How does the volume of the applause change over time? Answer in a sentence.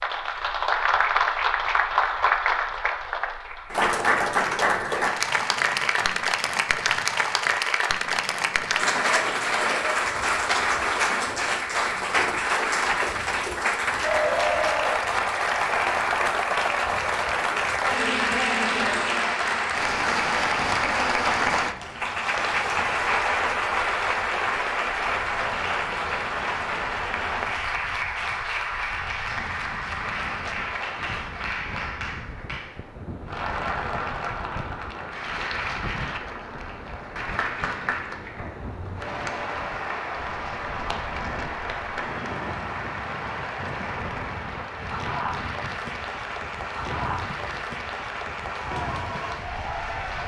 The volume of the applause goes down.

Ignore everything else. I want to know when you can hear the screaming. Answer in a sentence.
The screaming can't be heard in this clip.